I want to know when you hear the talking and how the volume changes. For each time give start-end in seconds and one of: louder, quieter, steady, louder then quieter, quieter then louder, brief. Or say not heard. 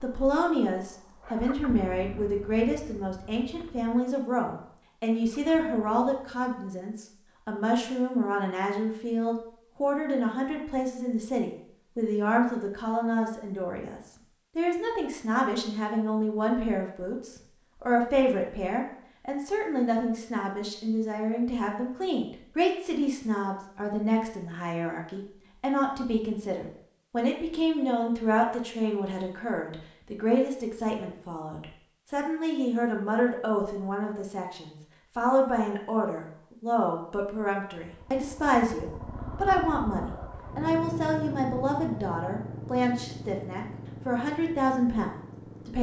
0.0-45.7 steady.